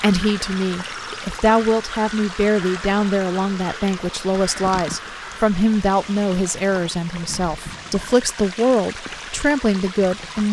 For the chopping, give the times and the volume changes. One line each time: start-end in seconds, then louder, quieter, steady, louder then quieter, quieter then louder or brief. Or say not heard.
not heard.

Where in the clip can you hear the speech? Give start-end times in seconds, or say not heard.
0.0-10.4.